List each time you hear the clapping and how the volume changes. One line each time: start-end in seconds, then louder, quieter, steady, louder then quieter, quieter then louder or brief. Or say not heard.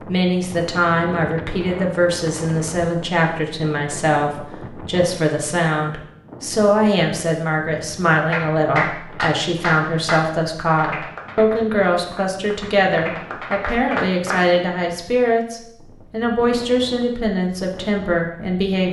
8.3-14.4 quieter then louder.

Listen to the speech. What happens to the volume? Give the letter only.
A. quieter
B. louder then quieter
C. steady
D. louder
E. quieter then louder
C.